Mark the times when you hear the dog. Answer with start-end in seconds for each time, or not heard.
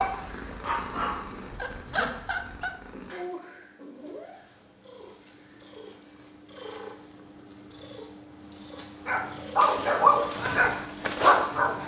0.0-2.7, 9.1-11.8.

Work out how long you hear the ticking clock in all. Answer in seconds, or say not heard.
not heard.